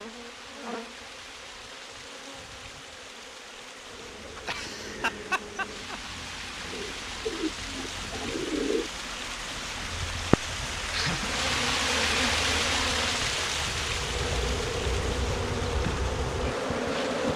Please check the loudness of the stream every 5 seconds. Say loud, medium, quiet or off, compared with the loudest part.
quiet, medium, loud, medium.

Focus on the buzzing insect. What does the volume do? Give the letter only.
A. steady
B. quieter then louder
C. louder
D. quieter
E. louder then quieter
C.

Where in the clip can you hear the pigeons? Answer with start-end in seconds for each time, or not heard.
6.7-8.9.